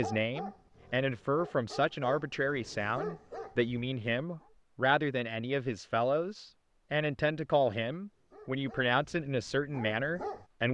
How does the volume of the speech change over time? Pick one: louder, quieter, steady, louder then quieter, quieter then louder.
steady.